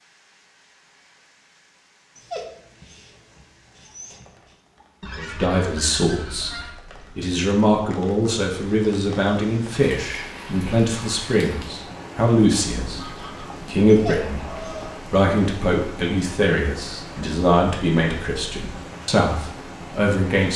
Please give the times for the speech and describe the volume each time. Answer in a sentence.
You can hear the speech from 5.2 to 20.5 s, at a steady volume.